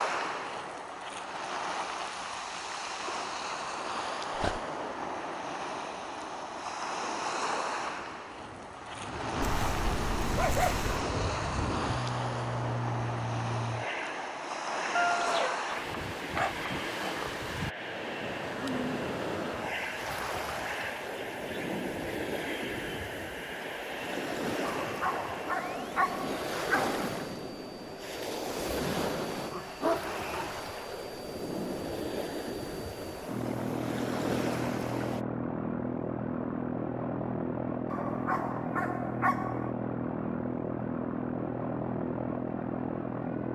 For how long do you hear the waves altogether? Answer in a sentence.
The waves can be heard for 35 seconds in total.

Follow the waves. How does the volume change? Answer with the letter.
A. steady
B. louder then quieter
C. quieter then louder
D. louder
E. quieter
A.